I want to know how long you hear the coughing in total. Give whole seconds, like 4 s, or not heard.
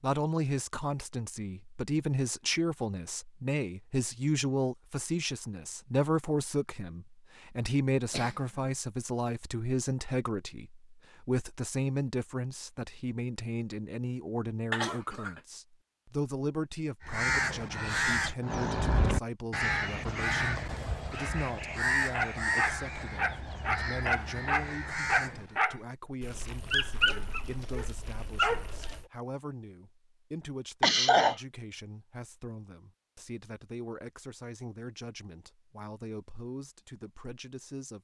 2 s.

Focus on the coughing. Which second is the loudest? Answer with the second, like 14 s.
31 s.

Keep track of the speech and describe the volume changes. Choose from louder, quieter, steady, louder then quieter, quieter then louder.
quieter.